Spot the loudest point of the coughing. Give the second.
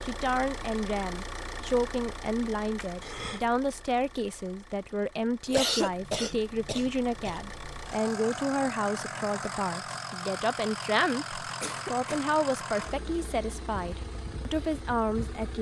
6 s.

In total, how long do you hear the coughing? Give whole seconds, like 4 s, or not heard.
4 s.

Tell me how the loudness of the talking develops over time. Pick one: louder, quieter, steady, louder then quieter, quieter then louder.
steady.